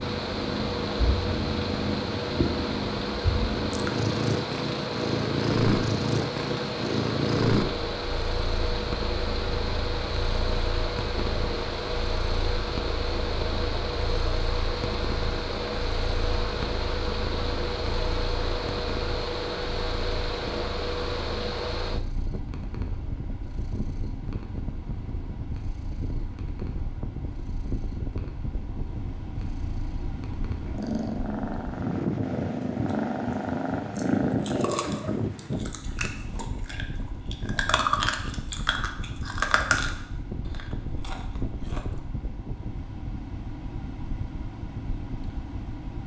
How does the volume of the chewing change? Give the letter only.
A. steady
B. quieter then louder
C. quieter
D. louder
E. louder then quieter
E.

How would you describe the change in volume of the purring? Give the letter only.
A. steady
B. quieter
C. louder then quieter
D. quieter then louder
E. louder
D.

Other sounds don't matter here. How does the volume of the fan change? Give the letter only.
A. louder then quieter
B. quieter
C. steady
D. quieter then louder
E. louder
B.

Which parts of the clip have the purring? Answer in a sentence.
You can hear the purring from 0.0 to 35.0 s.